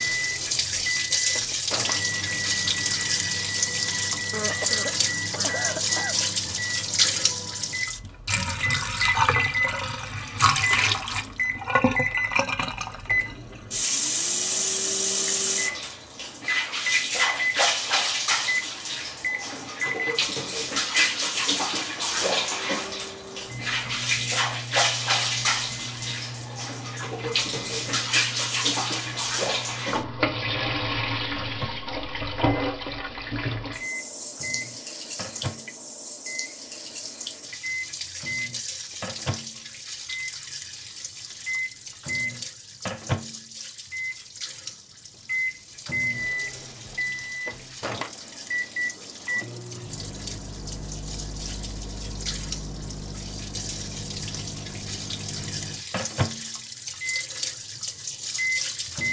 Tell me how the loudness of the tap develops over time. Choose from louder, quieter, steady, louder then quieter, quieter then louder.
quieter.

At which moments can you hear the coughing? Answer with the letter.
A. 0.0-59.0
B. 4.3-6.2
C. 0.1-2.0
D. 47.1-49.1
B.